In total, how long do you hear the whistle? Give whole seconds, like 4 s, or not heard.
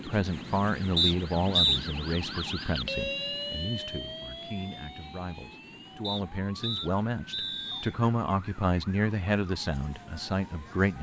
3 s.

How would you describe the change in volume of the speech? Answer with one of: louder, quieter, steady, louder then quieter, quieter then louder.
quieter then louder.